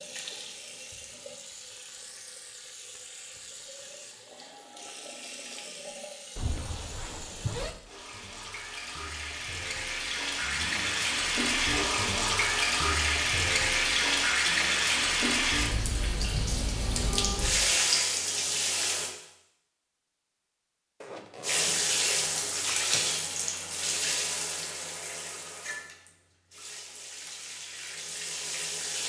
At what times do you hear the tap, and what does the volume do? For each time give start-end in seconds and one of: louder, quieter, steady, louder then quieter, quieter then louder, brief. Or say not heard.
0.0-19.1 louder
21.4-29.0 quieter then louder.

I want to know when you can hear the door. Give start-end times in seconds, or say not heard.
not heard.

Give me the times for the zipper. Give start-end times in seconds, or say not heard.
6.3-7.8, 10.4-11.1, 21.0-23.0.